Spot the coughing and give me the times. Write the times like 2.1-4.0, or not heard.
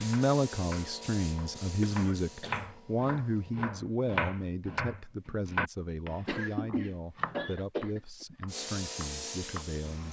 1.8-2.7, 6.2-8.2.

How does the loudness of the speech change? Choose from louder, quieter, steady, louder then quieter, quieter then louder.
quieter.